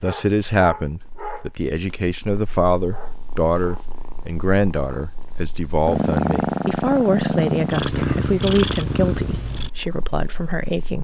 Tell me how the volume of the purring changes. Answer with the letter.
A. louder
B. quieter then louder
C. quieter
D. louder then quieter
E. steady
D.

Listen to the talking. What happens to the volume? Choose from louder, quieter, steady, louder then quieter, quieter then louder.
steady.